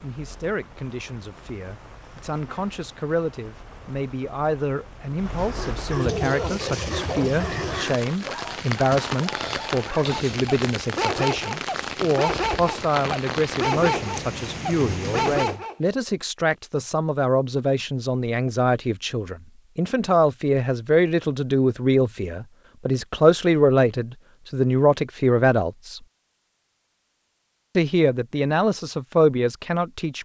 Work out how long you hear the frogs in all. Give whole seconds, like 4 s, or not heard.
not heard.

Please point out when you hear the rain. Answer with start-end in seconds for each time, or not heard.
0.0-15.6.